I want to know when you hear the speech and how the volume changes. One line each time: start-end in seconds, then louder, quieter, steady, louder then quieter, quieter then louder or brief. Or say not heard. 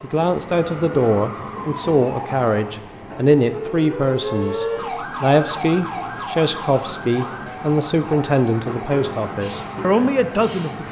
0.0-10.8 steady.